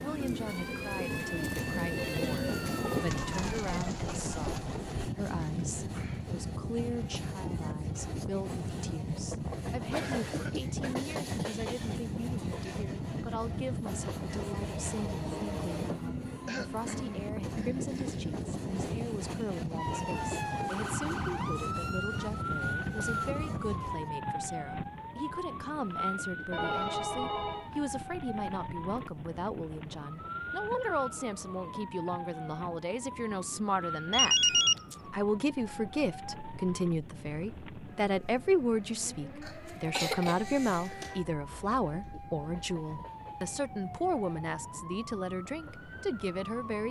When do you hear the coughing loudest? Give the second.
40 s.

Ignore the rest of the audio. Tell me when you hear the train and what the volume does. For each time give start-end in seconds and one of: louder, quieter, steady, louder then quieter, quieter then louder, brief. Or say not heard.
0.0-46.8 quieter.